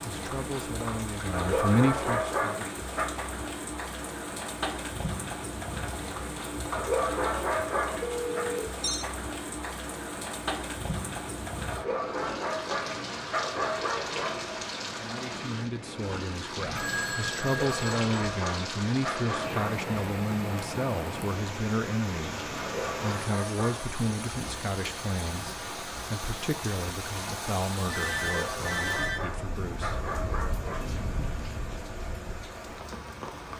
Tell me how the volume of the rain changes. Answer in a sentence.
The volume of the rain stays about the same.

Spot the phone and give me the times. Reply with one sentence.
You can hear the phone from 8.0 to 9.1 s, from 16.6 to 18.4 s and from 27.9 to 29.4 s.